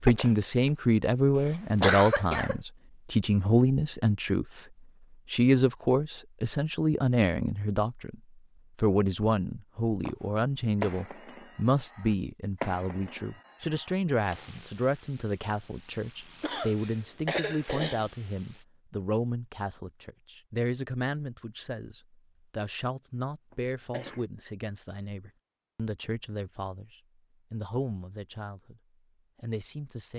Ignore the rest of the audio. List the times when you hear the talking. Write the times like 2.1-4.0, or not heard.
0.0-4.7, 5.3-8.2, 8.8-30.1.